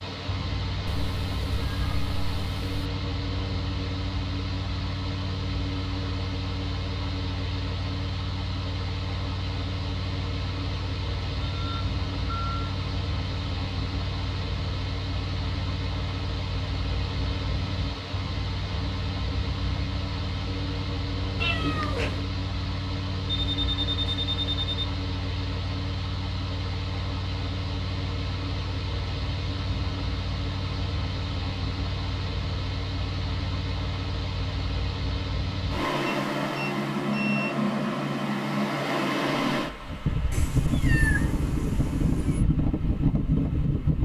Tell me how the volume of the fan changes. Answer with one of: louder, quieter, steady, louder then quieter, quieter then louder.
louder.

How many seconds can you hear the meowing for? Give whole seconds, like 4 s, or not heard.
5 s.